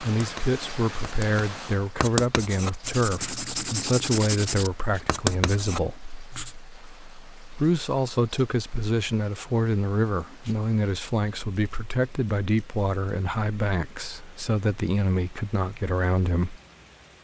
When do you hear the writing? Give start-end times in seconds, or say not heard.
0.0-6.5.